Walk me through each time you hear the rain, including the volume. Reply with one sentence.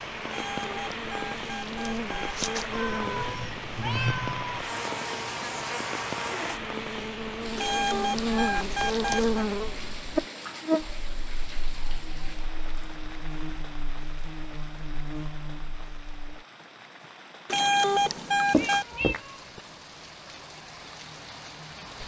You can hear the rain from 0.0 to 22.0 s, getting quieter.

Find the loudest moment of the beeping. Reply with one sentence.
The loudest moment of the beeping is at 18 seconds.